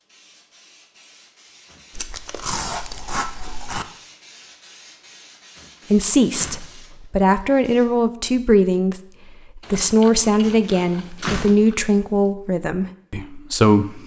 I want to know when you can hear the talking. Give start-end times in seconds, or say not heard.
5.9-14.0.